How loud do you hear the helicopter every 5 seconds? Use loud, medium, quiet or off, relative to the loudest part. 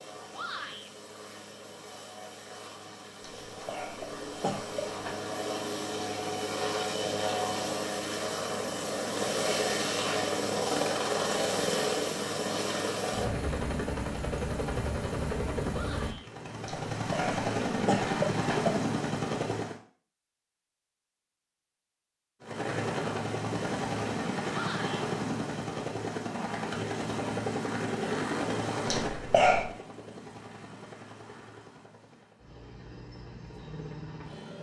quiet, loud, loud, loud, loud, loud, quiet.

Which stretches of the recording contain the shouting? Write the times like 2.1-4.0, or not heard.
0.3-0.9, 15.7-16.3, 24.5-25.1.